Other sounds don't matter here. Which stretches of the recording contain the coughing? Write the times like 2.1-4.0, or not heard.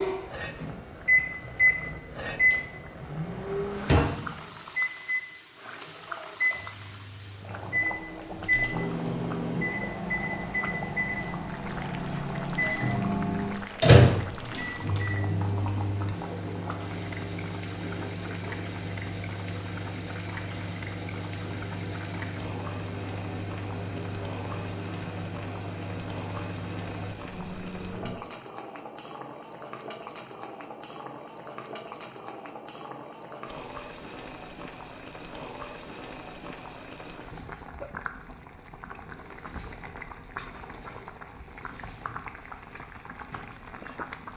not heard.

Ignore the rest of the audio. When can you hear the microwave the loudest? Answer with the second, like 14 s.
14 s.